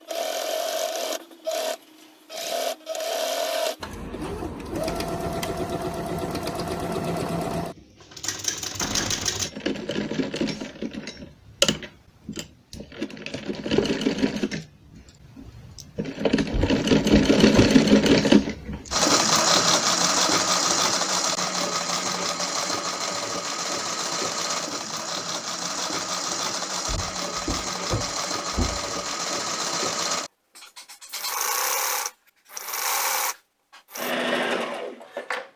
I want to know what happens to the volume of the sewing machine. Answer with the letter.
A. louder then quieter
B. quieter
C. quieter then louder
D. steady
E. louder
A.